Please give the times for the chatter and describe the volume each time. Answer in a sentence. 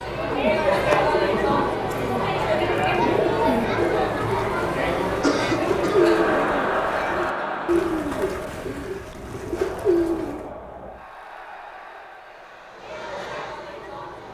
The chatter can be heard from 0.0 to 14.2 s, getting quieter.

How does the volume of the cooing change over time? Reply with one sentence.
The volume of the cooing stays about the same.